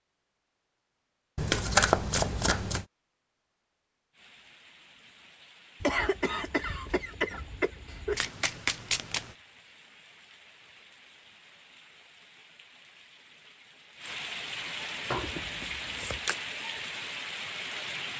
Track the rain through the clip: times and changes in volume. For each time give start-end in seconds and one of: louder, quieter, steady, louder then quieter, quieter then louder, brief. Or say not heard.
4.1-18.1 louder.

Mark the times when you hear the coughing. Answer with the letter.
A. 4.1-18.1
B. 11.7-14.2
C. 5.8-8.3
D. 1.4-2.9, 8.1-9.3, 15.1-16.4
C.